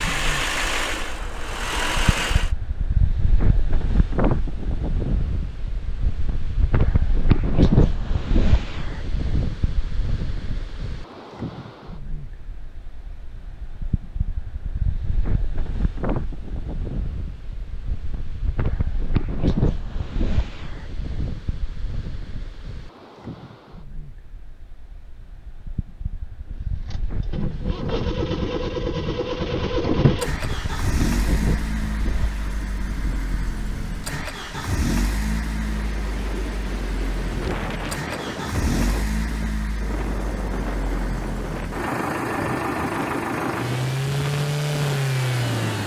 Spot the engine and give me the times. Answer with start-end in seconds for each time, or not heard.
0.0-2.5, 26.9-45.8.